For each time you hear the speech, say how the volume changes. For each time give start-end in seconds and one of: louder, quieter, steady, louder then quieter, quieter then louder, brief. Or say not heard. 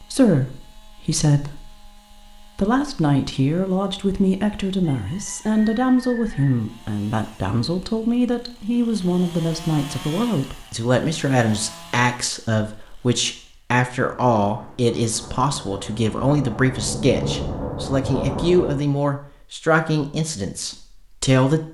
0.0-21.6 steady.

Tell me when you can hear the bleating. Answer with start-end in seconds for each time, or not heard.
not heard.